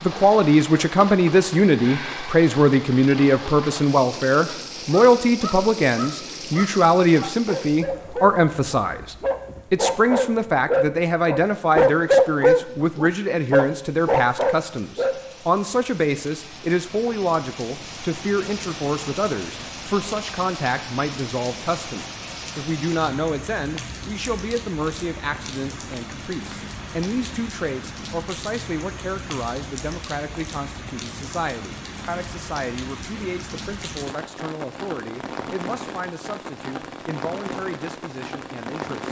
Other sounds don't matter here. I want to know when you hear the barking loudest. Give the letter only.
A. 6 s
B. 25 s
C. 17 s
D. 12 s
D.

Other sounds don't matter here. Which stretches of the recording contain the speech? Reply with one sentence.
The speech can be heard from 0.0 to 39.0 s.